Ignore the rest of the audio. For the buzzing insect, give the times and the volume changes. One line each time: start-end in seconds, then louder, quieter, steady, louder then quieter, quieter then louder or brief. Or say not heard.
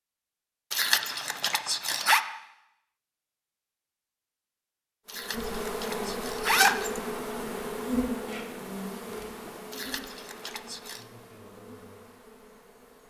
5.1-13.0 quieter.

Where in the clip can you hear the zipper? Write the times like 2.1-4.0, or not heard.
0.7-2.2, 5.0-7.0, 9.7-11.1.